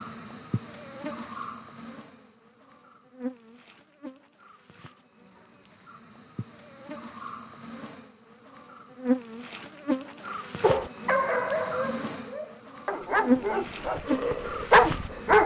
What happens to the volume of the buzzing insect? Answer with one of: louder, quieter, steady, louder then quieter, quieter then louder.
quieter then louder.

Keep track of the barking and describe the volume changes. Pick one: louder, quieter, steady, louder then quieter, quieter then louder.
quieter then louder.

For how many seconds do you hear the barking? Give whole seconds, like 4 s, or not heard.
5 s.